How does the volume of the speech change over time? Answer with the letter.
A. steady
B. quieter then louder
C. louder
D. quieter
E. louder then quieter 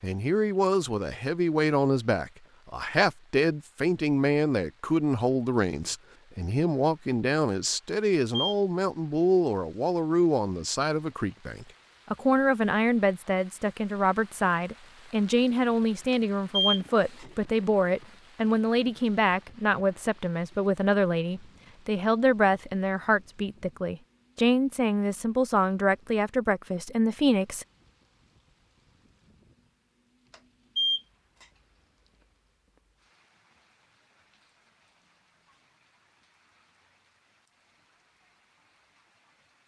A.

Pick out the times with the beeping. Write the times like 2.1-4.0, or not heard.
7.9-8.6, 16.1-17.2, 30.3-31.4.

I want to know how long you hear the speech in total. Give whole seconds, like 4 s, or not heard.
28 s.